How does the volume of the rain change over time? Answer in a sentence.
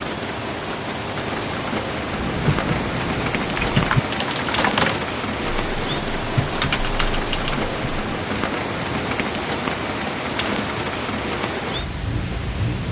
The loudness of the rain stays about the same.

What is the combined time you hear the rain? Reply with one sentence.
You can hear the rain for 13 seconds altogether.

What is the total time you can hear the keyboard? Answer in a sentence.
The keyboard can be heard for 6 seconds in total.